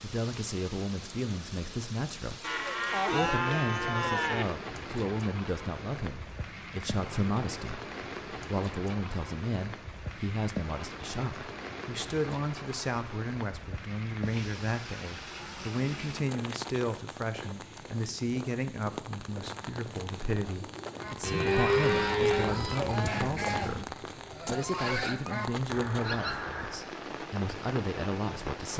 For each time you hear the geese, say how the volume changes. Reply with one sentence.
The geese can be heard from 20.9 to 26.9 s, at a steady volume.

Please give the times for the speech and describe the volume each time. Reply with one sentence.
The speech can be heard from 0.0 to 28.7 s, at a steady volume.